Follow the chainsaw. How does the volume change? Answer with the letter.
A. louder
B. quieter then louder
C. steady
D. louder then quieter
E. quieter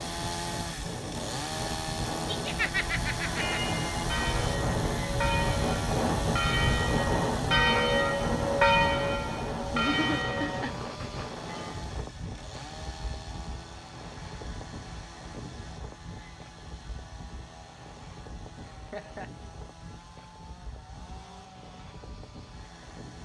E.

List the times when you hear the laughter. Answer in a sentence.
You can hear the laughter from 2.2 to 3.6 s, from 9.7 to 10.8 s and from 18.6 to 19.3 s.